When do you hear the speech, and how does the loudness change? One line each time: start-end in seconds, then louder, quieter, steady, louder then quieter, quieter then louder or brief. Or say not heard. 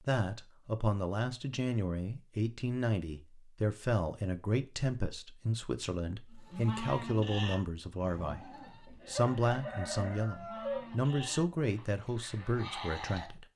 0.0-13.4 steady.